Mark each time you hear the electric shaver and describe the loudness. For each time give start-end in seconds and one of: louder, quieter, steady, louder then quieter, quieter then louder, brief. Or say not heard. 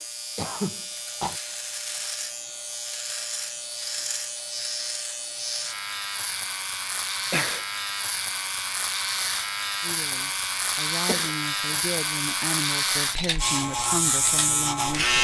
0.0-15.1 louder.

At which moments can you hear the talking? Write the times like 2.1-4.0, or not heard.
9.8-15.1.